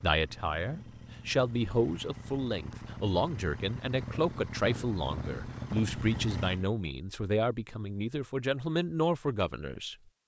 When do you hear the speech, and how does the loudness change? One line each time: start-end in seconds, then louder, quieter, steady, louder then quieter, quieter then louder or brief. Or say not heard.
0.0-9.9 steady.